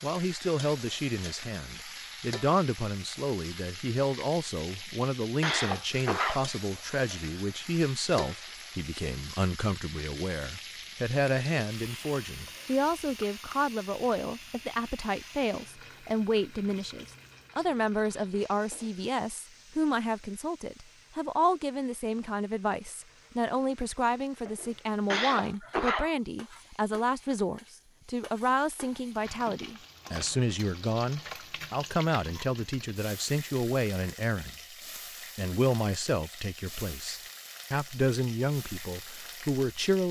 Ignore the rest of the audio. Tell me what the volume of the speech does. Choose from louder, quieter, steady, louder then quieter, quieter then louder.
steady.